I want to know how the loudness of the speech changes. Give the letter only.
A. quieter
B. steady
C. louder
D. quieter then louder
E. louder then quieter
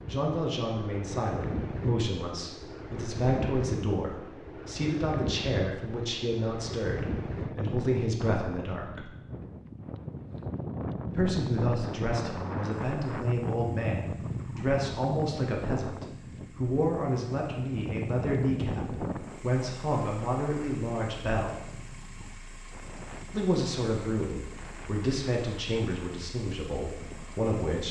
B.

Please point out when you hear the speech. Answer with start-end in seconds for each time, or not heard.
0.1-9.1, 11.1-21.6, 23.3-27.8.